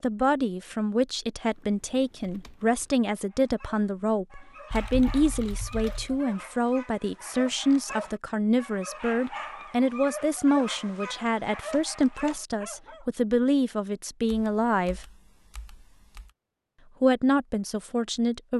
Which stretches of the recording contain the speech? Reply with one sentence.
You can hear the speech from 0.0 to 15.1 s and from 17.0 to 18.5 s.